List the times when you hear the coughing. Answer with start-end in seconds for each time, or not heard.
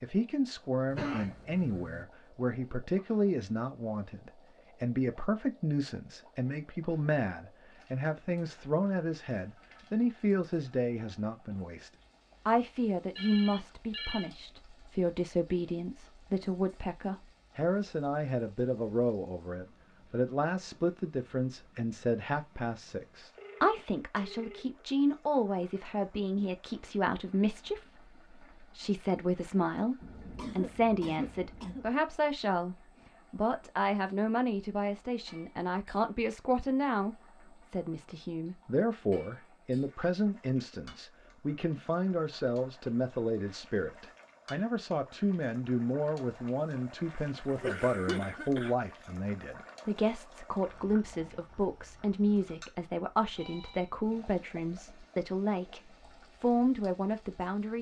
0.9-2.0, 30.0-31.9, 47.5-48.8.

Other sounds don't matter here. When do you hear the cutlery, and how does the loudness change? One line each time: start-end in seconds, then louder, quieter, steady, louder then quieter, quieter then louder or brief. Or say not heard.
not heard.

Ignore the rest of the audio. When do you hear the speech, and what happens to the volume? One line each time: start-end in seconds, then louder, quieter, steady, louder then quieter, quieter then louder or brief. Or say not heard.
0.0-57.7 steady.